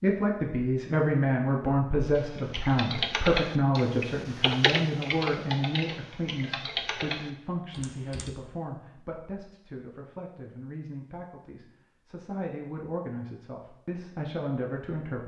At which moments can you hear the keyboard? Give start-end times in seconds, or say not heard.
2.1-8.3.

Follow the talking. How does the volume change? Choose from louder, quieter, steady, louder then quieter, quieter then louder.
quieter then louder.